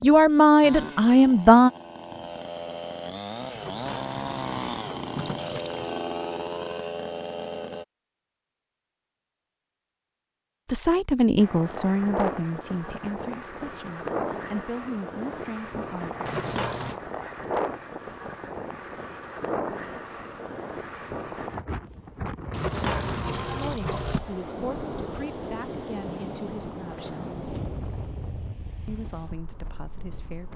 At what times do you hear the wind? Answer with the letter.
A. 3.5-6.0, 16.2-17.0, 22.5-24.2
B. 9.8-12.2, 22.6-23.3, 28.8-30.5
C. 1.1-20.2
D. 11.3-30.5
D.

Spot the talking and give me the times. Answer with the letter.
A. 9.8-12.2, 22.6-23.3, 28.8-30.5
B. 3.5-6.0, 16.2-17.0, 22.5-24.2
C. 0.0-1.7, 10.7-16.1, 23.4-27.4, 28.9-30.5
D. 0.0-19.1
C.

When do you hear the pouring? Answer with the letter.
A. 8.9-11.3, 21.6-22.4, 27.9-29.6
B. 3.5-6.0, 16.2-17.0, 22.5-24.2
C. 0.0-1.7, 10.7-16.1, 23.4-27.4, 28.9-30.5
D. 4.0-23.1
B.